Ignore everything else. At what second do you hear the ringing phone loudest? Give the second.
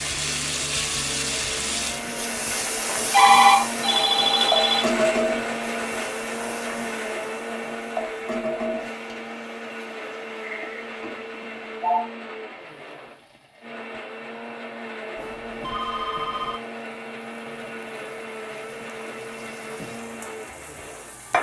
3 s.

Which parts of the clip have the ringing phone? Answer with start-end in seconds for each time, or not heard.
2.9-4.8, 10.4-12.1, 15.2-16.6.